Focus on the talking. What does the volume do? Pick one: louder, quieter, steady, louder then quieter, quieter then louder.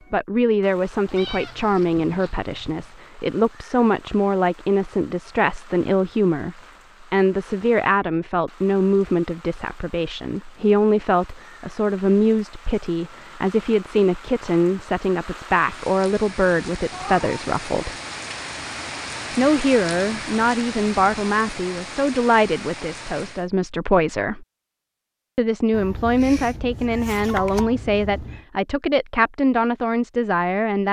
steady.